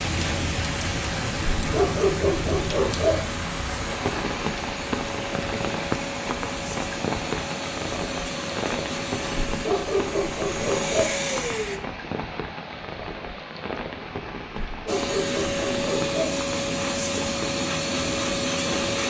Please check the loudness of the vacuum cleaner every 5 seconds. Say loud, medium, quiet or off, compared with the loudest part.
medium, medium, loud, loud.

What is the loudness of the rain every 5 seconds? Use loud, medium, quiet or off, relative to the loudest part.
loud, loud, medium, medium.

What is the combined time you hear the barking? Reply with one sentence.
You can hear the barking for 5 seconds altogether.